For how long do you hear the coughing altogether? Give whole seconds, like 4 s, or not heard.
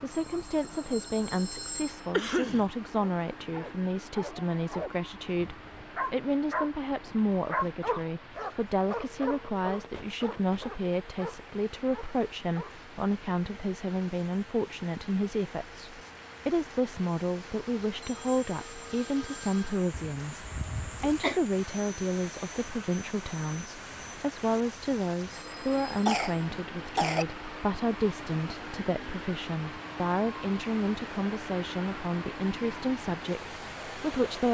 3 s.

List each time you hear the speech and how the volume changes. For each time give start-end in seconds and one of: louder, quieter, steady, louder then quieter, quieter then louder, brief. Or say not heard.
0.0-34.4 steady.